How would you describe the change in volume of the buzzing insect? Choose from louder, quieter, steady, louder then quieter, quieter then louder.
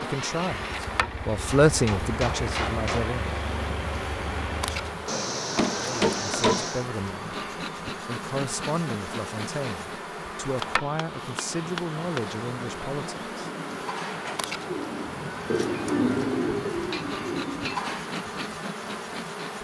steady.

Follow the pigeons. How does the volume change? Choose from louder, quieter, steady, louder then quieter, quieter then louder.
louder then quieter.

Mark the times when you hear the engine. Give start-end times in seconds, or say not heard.
0.0-5.2.